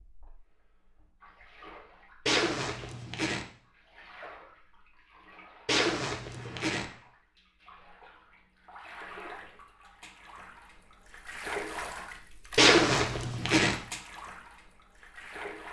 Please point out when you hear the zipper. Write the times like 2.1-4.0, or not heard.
2.2-3.5, 5.7-6.9, 12.6-13.8.